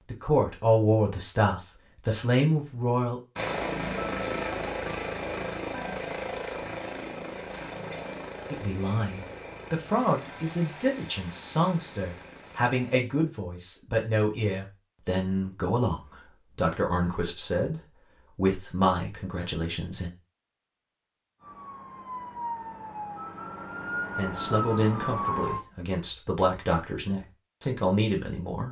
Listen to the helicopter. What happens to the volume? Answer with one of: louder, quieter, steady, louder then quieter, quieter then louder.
quieter.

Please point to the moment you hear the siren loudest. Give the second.
25 s.